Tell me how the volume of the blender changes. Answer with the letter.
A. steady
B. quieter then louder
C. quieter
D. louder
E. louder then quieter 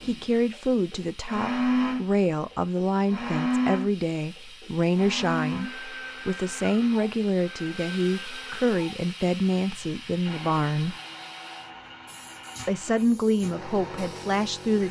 C.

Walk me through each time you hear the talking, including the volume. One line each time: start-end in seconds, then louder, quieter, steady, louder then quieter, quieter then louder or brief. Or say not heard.
0.0-10.9 steady
12.7-14.8 brief.